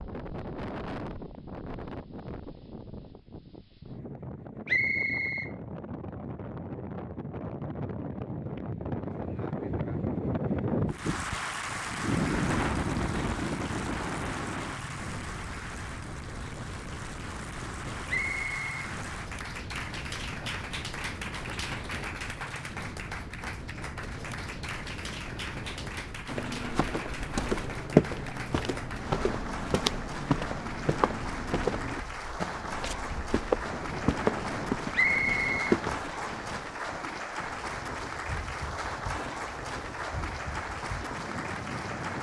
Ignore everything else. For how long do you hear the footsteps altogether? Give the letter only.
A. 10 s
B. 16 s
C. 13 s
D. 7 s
A.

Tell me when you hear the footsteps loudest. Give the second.
28 s.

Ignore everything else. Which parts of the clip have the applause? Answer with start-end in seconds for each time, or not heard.
10.9-42.1.